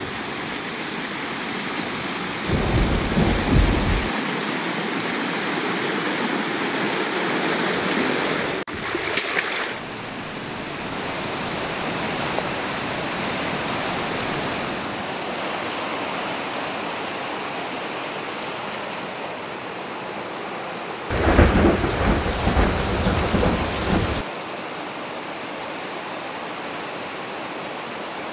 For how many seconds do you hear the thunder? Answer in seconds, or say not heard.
5 s.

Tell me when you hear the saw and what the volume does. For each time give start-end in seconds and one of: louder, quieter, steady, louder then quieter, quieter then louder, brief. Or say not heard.
not heard.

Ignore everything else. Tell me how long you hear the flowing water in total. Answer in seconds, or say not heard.
28 s.